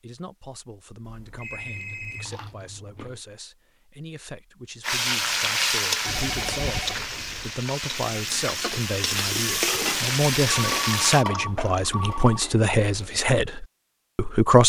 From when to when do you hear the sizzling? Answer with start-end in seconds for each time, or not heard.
4.8-11.2.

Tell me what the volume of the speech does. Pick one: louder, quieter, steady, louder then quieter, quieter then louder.
louder.